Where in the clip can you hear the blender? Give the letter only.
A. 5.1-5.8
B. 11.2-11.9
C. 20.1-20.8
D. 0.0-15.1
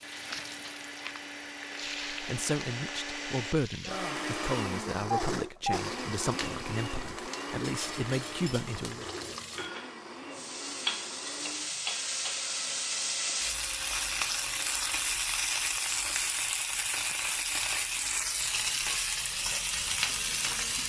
D.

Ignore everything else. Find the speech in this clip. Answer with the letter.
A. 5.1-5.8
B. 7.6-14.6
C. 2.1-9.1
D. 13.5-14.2
C.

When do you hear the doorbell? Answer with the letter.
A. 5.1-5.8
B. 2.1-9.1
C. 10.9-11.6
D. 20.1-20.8
A.